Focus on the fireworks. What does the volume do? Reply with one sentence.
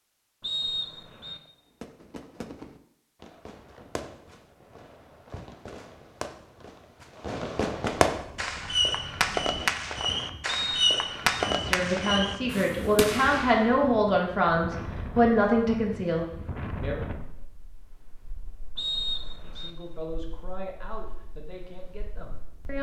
The volume of the fireworks goes up.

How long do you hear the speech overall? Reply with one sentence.
You can hear the speech for 9 seconds altogether.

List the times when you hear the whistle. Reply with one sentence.
You can hear the whistle from 0.4 to 1.4 s, from 10.4 to 11.2 s and from 18.8 to 19.7 s.